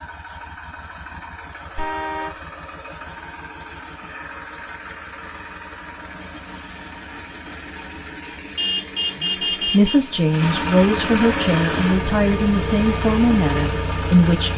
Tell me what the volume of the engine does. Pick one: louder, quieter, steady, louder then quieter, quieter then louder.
louder.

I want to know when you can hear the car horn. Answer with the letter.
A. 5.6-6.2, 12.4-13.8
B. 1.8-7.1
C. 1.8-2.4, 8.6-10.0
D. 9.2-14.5
C.